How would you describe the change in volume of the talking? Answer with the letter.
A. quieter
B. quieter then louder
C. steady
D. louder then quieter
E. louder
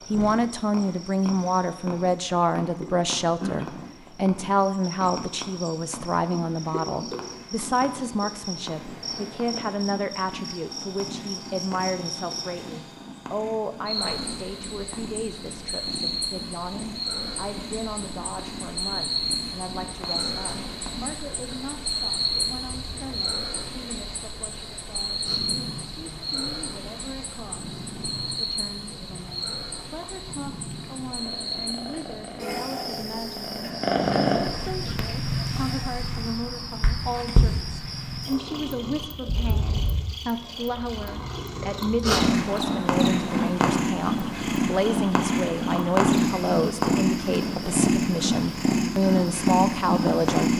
B.